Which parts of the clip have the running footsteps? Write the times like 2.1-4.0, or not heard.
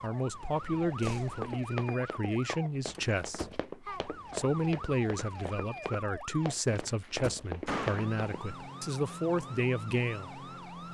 0.8-8.2.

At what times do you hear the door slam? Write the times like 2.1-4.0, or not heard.
0.8-1.4, 7.0-8.2.